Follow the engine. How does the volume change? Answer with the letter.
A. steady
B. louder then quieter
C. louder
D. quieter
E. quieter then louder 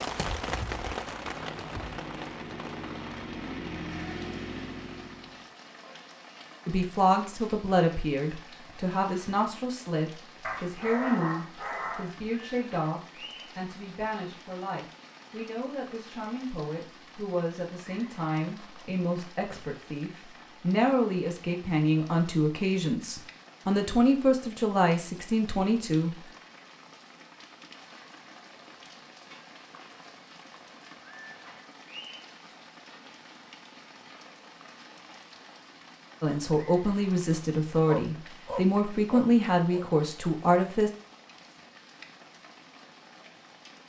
C.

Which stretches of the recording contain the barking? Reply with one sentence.
The barking can be heard from 10.4 to 12.2 s and from 37.9 to 39.9 s.